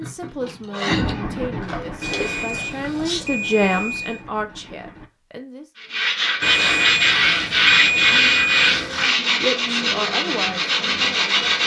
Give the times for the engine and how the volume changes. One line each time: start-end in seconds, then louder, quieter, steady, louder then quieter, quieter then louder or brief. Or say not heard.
0.1-5.1 quieter.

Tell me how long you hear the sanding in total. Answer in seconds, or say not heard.
9 s.